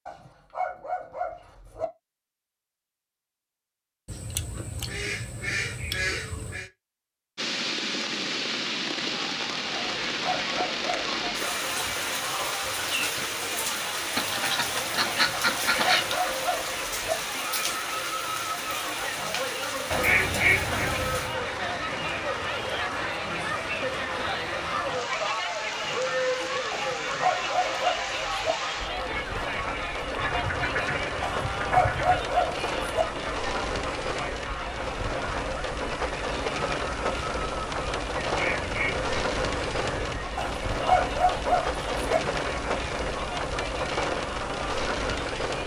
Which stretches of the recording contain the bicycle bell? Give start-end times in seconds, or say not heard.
not heard.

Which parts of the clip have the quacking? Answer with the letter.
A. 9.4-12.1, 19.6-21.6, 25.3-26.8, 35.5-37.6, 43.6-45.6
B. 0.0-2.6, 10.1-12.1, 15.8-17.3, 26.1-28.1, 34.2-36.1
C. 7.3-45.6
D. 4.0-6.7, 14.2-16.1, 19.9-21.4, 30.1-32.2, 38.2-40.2
D.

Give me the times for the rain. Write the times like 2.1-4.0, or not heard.
7.3-45.6.